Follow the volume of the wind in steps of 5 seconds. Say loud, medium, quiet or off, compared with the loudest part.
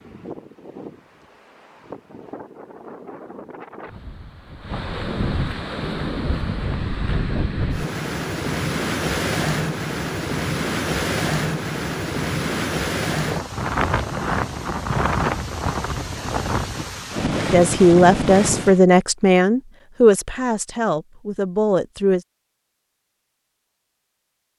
quiet, loud, loud, loud, off.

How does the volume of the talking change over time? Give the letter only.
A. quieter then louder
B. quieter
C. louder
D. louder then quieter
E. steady
B.